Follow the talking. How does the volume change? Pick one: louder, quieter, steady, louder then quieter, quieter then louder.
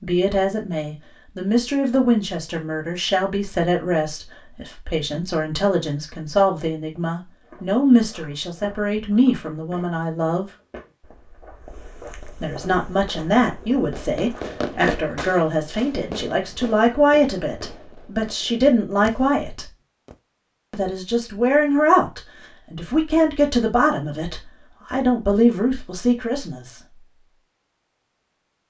steady.